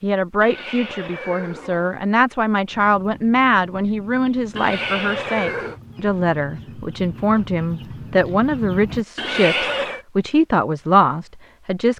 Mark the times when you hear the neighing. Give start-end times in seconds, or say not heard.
0.4-2.0, 4.5-5.8, 9.2-10.1.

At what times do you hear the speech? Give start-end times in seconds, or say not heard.
0.0-11.9.